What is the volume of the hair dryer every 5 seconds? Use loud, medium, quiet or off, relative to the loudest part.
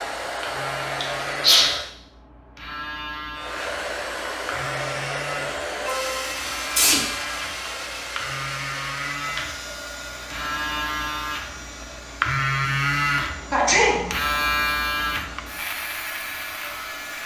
loud, loud, medium, medium.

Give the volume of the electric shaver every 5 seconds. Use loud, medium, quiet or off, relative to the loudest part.
medium, medium, loud, medium.